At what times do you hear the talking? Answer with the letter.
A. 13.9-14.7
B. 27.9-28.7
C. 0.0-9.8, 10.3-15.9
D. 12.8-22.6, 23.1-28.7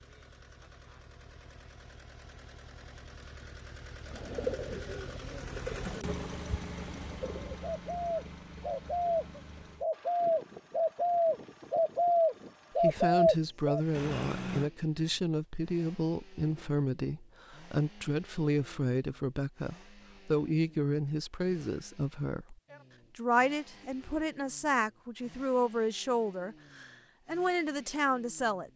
D.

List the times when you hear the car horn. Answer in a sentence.
You can hear the car horn from 13.9 to 14.7 s.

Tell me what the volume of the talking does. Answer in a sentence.
The volume of the talking stays about the same.